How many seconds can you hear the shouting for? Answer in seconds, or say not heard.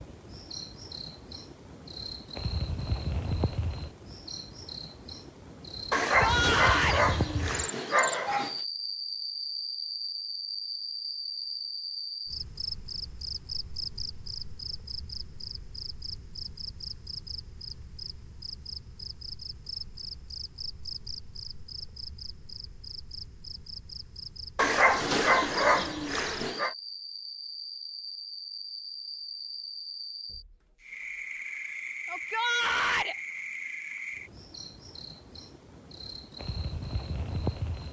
2 s.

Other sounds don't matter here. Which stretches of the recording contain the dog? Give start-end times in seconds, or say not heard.
5.9-8.6, 24.6-26.8.